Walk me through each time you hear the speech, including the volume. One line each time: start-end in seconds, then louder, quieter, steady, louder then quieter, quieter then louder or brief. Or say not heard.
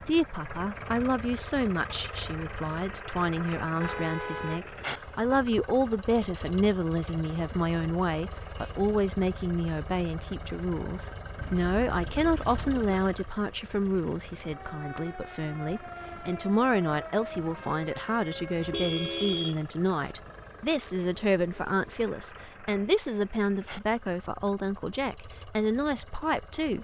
0.1-26.7 steady.